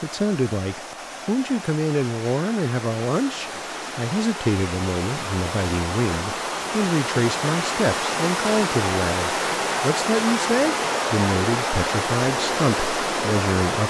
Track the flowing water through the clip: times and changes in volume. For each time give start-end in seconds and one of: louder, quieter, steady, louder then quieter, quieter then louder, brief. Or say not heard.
0.0-13.8 louder.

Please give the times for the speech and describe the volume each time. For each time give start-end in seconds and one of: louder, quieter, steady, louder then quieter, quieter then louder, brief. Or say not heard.
0.0-13.8 steady.